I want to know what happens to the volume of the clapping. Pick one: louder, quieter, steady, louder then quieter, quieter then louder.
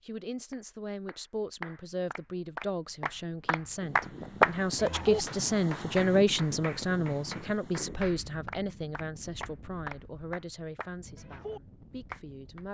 louder then quieter.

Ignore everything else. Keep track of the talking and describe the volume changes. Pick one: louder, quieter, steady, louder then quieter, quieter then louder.
louder then quieter.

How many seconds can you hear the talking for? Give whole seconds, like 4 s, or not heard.
13 s.